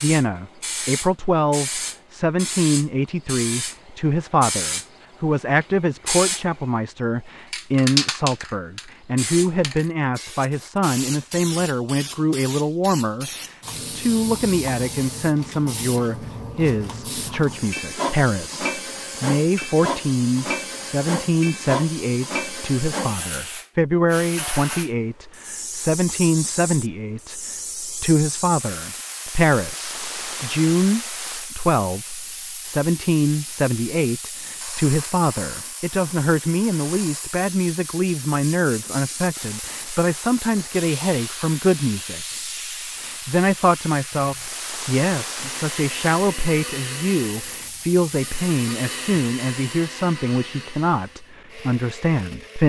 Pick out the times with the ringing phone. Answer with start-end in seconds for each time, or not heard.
not heard.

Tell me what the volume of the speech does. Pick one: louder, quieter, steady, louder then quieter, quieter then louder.
steady.